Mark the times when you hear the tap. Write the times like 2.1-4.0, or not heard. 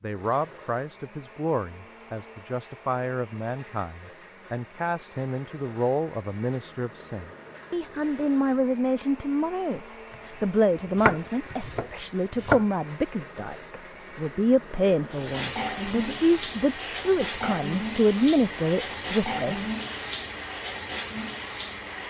15.1-22.0.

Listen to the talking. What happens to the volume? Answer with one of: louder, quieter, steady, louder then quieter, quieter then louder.
louder.